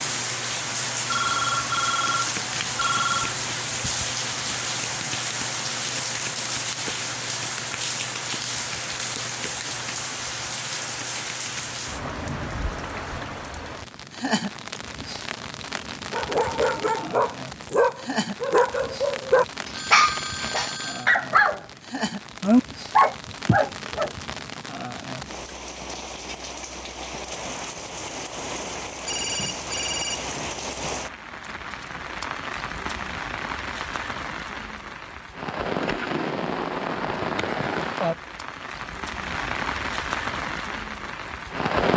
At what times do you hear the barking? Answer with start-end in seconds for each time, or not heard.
16.1-21.6, 22.4-24.1.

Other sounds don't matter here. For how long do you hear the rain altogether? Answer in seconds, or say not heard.
42 s.